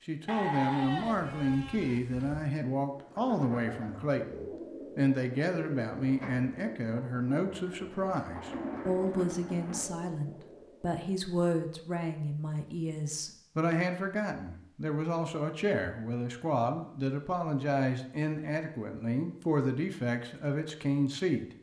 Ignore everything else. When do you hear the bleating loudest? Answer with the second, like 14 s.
1 s.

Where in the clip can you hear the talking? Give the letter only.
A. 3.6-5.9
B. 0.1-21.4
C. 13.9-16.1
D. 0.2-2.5
B.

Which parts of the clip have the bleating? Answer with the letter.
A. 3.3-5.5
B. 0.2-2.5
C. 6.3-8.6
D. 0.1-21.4
B.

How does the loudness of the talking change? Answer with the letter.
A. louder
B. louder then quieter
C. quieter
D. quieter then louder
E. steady
E.